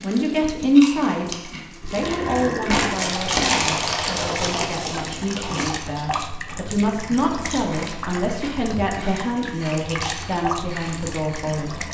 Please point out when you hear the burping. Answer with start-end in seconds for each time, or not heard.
1.8-2.9.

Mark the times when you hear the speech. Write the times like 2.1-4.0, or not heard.
0.0-11.8.